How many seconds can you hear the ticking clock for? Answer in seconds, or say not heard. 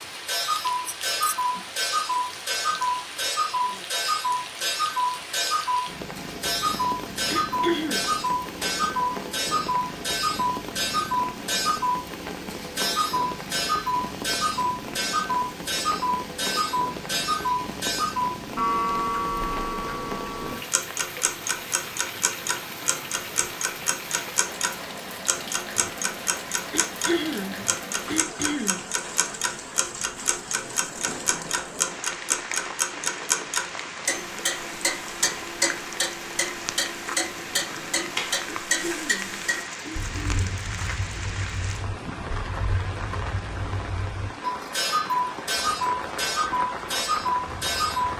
48 s.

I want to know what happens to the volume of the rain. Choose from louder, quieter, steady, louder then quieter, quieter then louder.
steady.